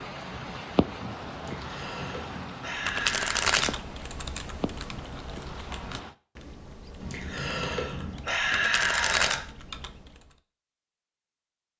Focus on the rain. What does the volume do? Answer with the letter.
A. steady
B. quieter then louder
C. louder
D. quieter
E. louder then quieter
D.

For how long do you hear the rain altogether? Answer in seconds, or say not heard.
6 s.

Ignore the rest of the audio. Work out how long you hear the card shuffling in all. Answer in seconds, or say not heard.
2 s.